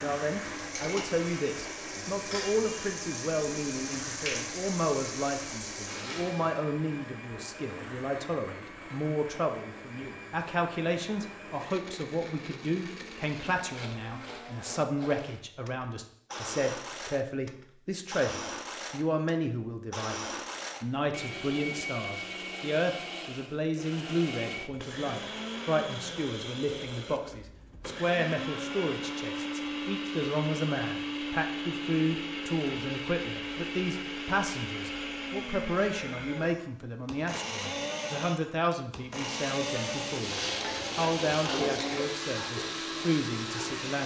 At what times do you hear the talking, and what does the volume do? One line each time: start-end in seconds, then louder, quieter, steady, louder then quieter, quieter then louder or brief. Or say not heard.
0.0-44.0 steady.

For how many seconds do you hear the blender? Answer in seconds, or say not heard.
44 s.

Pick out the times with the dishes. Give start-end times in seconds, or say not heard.
not heard.